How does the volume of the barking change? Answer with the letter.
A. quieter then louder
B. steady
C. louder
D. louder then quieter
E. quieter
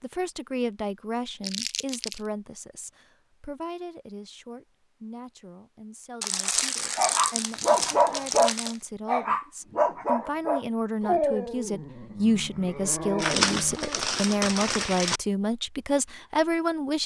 E.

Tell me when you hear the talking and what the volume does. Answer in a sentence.
The talking can be heard from 0.0 to 17.0 s, getting quieter then louder.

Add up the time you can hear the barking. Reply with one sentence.
You can hear the barking for 7 seconds altogether.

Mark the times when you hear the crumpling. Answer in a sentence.
The crumpling can be heard from 1.4 to 2.3 s, from 6.2 to 8.8 s and from 13.2 to 15.2 s.